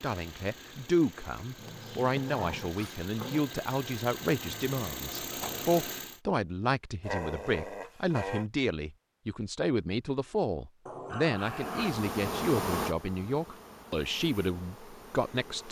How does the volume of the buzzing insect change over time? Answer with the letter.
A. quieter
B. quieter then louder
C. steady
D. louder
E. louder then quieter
A.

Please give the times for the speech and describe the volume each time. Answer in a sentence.
You can hear the speech from 0.0 to 15.6 s, at a steady volume.